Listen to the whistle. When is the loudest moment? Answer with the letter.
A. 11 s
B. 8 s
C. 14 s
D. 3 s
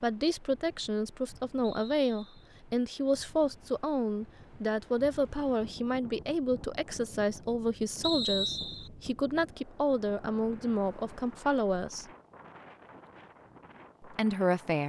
B.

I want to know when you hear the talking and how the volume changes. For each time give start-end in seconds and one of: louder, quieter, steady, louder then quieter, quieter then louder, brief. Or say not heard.
0.0-12.1 steady
14.0-14.8 brief.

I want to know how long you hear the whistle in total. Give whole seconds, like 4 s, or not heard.
2 s.